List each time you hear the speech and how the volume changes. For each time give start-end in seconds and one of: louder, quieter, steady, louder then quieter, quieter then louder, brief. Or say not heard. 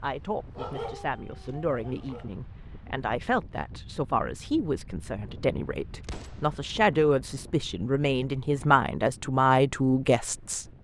0.0-10.7 louder.